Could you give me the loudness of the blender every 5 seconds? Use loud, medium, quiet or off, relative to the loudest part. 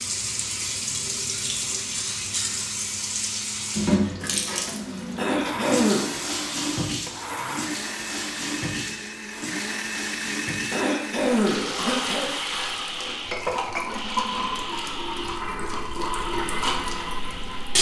medium, loud, loud, medium.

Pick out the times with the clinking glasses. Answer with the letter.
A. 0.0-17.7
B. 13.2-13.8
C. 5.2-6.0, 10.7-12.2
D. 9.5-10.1
B.